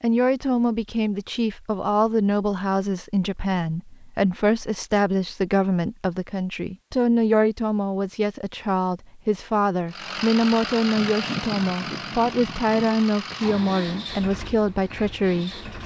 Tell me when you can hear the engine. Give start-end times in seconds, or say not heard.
9.9-15.8.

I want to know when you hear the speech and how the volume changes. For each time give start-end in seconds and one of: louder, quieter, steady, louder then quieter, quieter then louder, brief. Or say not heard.
0.0-15.8 steady.